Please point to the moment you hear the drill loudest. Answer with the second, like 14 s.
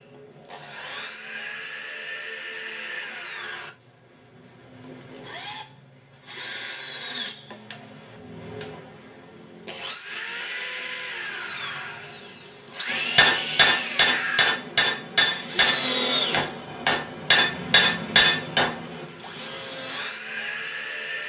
16 s.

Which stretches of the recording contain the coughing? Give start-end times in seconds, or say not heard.
not heard.